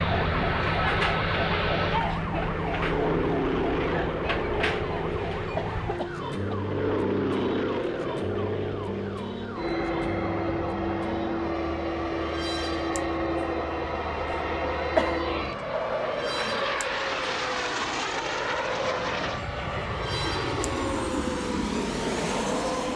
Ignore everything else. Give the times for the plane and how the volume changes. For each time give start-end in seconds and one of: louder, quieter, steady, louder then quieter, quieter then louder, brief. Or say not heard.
0.0-22.9 steady.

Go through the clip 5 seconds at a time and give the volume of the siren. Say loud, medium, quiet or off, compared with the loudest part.
loud, medium, medium, medium, medium.